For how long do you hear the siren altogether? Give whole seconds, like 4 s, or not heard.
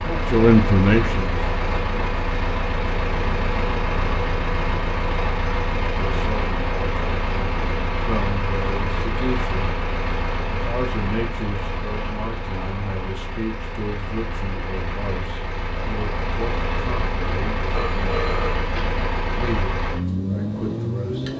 not heard.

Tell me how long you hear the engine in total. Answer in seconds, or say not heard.
21 s.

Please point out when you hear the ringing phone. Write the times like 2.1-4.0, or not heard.
17.8-18.9.